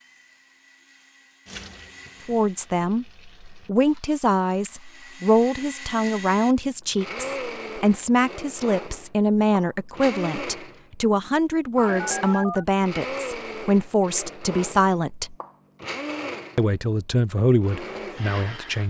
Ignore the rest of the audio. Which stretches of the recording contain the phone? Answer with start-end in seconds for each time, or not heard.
11.8-12.7.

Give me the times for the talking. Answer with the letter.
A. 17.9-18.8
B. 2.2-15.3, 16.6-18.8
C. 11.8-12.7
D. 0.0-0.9
B.